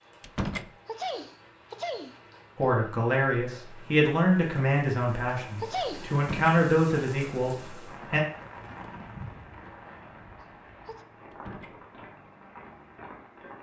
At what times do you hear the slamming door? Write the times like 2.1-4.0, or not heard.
0.2-0.7, 6.2-6.6, 11.3-11.8.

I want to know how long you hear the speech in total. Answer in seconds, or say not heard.
6 s.